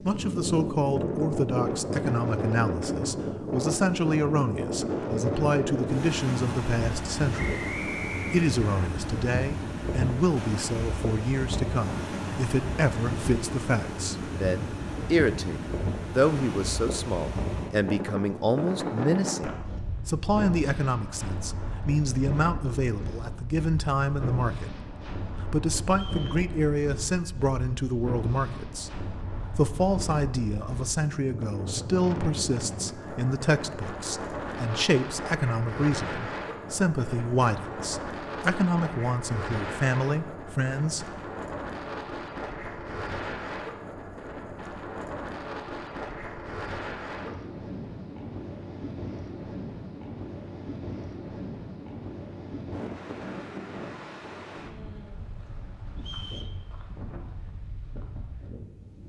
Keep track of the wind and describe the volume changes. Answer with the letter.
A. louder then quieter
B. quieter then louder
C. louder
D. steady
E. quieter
E.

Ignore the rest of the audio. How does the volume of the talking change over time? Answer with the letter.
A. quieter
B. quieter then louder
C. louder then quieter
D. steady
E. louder
D.